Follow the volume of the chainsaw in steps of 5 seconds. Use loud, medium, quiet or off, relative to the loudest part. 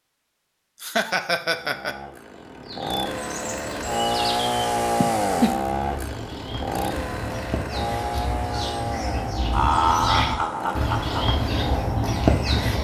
loud, loud, medium.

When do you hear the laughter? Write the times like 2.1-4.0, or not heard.
0.8-1.9, 5.0-5.6, 9.5-11.3.